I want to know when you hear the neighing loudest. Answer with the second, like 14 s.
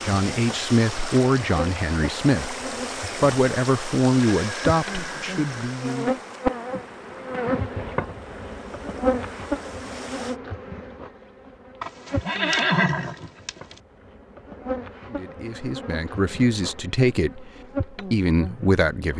13 s.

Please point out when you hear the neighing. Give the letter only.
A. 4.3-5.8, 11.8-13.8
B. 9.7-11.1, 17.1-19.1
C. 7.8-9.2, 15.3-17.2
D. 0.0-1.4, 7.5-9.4
A.